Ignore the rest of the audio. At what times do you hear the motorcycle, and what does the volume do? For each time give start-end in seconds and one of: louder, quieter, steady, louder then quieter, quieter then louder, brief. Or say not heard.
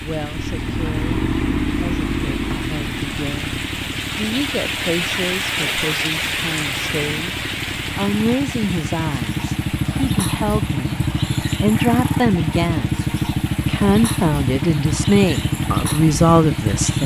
0.0-17.0 quieter then louder.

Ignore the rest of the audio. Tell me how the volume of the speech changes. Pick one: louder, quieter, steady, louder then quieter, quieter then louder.
louder.